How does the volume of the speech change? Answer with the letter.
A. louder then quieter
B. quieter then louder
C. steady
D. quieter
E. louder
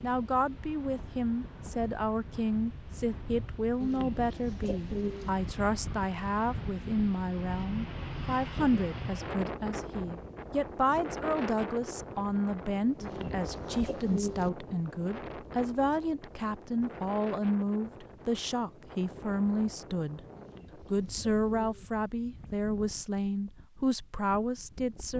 C.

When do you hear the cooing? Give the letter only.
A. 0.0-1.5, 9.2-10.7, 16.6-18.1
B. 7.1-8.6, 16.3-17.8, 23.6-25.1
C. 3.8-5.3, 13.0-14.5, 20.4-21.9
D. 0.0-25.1
C.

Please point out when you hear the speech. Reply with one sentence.
You can hear the speech from 0.0 to 25.1 s.